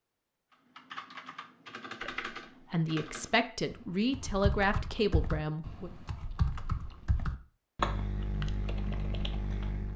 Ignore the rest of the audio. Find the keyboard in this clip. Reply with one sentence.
You can hear the keyboard from 0.8 to 9.9 s.